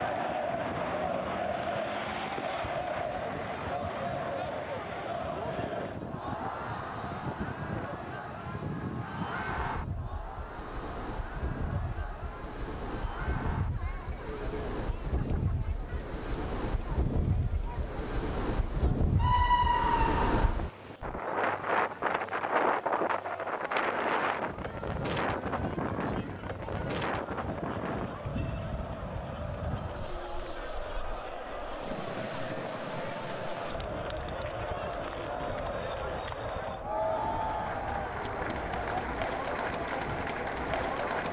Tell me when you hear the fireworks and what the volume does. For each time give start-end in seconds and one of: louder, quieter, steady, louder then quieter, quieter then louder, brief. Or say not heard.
not heard.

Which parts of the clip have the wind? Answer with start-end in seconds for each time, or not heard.
0.0-41.0.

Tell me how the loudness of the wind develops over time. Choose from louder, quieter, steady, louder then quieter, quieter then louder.
louder then quieter.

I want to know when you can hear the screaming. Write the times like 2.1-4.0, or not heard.
19.1-20.6.